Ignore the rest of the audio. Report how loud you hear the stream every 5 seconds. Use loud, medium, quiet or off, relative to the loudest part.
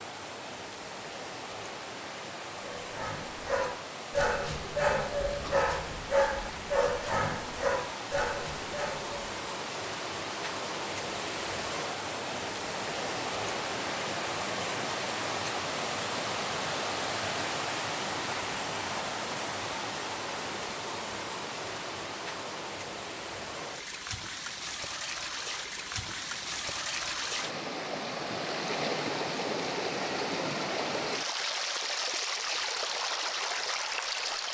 medium, medium, loud, loud, medium, loud, loud.